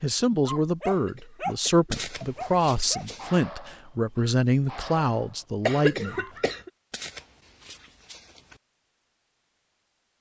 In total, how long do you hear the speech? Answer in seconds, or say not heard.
6 s.